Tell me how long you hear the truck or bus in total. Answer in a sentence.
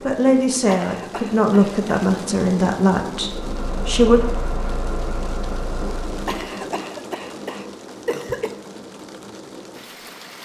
The truck or bus can be heard for 3 seconds in total.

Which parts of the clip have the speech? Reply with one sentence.
You can hear the speech from 0.1 to 4.2 s.